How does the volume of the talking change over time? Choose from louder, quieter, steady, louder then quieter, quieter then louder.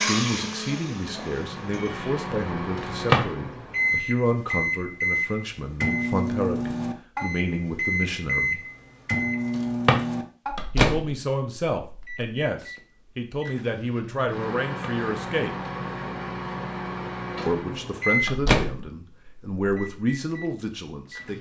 steady.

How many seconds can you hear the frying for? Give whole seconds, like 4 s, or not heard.
2 s.